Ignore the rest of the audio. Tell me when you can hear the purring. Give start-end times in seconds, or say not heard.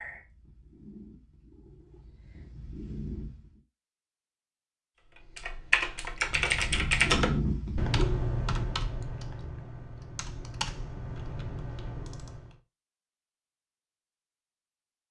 0.0-3.6, 6.2-8.8.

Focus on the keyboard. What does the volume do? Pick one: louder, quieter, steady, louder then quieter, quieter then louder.
quieter.